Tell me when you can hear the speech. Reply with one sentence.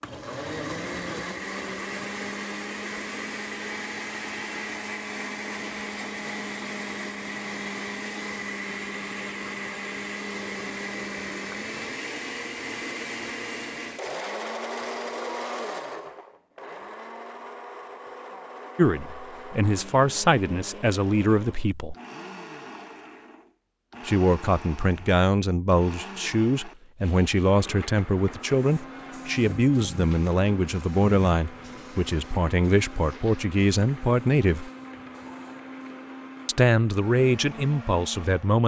You can hear the speech from 18.8 to 21.9 s, from 24.1 to 34.7 s and from 36.5 to 38.6 s.